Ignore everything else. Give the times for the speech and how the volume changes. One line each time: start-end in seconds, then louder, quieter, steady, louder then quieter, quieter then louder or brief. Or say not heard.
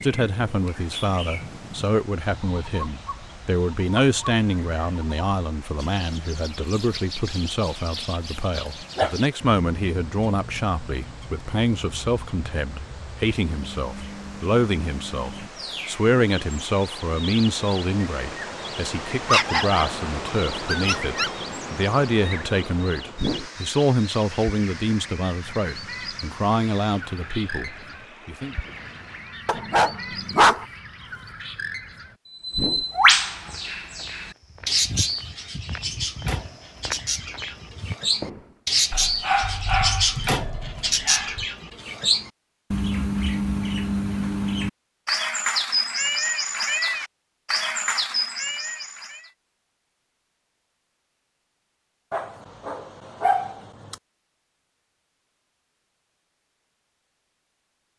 0.0-28.6 steady.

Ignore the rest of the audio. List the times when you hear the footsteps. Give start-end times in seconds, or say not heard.
33.4-38.5.